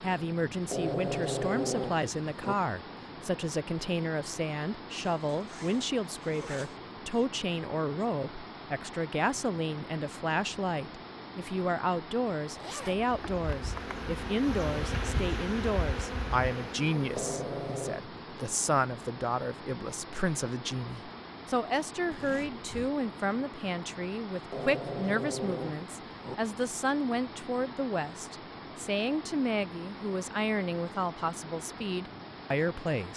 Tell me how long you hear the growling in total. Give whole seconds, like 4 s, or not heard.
5 s.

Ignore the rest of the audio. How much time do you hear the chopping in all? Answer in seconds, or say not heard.
not heard.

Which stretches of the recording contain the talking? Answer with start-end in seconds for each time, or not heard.
0.0-33.1.